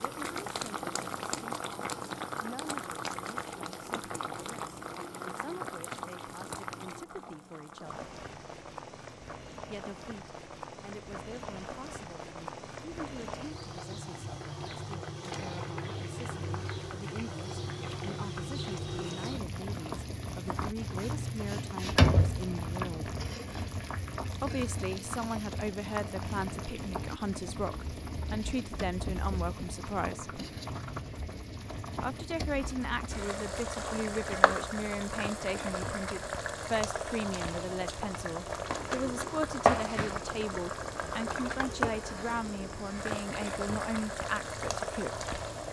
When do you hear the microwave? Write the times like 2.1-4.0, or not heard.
not heard.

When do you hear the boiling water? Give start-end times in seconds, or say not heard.
0.0-45.6.